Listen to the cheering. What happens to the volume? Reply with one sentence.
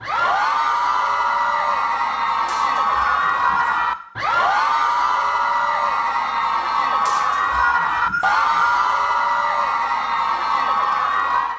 The loudness of the cheering stays about the same.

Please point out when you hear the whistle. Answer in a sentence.
You can hear the whistle from 2.5 to 4.0 s and from 7.0 to 8.9 s.